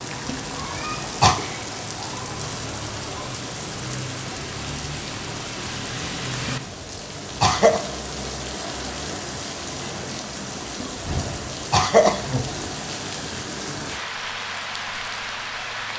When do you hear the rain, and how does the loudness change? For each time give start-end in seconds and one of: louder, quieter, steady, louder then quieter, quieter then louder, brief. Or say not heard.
0.0-15.9 steady.